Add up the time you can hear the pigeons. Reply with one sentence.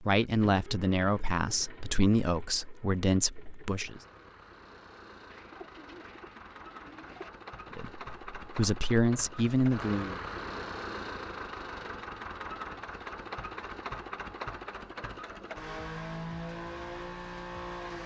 You can hear the pigeons for 2 seconds altogether.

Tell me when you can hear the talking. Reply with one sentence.
You can hear the talking from 0.0 to 4.0 s and from 7.8 to 10.2 s.